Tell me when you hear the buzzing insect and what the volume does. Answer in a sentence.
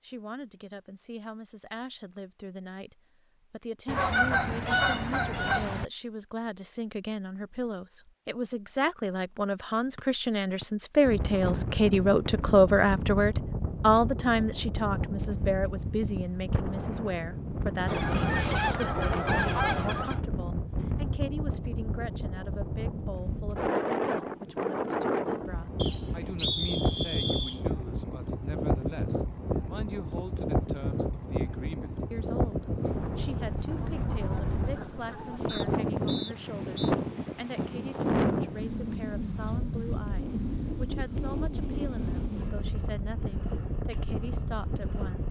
You can't hear the buzzing insect here.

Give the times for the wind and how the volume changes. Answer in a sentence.
You can hear the wind from 11.1 to 45.2 s, at a steady volume.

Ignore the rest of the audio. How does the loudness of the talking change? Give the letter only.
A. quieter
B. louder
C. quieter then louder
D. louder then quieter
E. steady
D.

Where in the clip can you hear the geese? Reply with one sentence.
You can hear the geese from 3.9 to 5.8 s, from 17.9 to 20.2 s and from 33.6 to 35.8 s.